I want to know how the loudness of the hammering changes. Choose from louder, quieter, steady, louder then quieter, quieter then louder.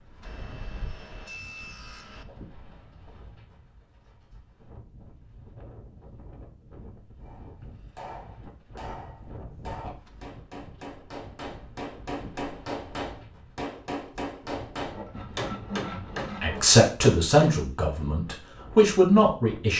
louder.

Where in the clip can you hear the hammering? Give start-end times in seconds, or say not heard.
7.2-17.6.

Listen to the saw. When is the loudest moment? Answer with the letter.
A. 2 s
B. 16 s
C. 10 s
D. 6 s
B.